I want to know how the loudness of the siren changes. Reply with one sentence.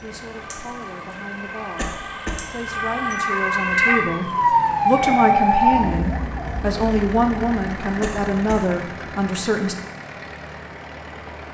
The loudness of the siren goes up, then down.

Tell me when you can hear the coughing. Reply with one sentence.
The coughing can be heard from 1.8 to 2.5 s and from 8.0 to 8.7 s.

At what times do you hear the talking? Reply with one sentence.
You can hear the talking from 0.0 to 9.8 s.